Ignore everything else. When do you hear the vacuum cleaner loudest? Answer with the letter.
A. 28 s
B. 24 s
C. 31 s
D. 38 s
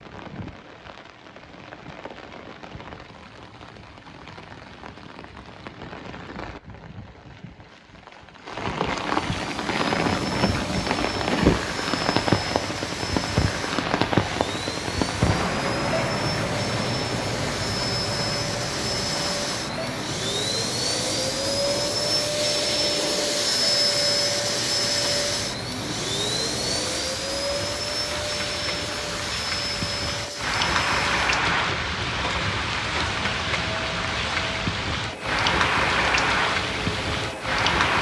B.